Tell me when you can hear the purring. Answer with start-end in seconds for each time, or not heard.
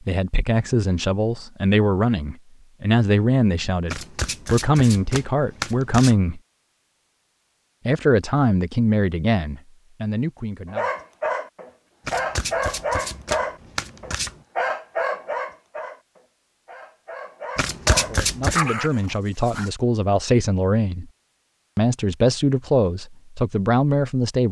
not heard.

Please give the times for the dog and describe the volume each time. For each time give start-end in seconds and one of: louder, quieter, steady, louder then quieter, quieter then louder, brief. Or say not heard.
10.7-19.7 quieter then louder.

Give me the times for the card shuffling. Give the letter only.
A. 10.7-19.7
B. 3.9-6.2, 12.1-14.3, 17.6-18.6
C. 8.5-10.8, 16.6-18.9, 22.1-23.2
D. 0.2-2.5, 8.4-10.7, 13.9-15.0
B.